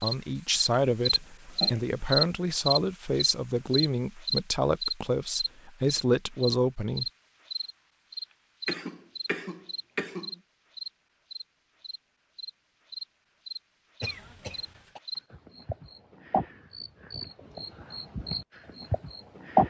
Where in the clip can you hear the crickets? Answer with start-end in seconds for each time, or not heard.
0.0-19.6.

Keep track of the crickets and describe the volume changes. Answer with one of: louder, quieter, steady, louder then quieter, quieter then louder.
quieter.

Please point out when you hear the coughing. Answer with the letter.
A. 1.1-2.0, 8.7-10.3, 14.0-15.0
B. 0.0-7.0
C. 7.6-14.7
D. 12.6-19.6
A.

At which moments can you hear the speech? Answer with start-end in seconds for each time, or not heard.
0.0-7.0.